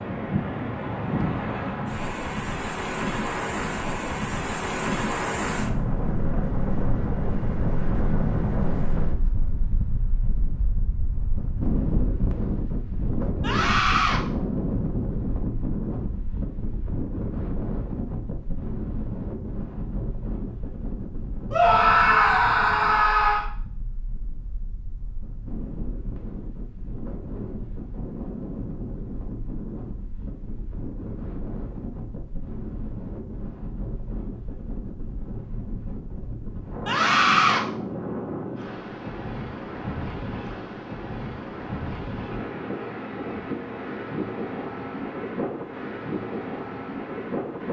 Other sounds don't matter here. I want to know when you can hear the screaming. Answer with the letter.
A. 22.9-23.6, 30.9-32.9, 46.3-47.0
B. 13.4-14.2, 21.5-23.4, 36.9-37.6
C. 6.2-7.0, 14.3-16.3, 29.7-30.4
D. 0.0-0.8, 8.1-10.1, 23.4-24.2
B.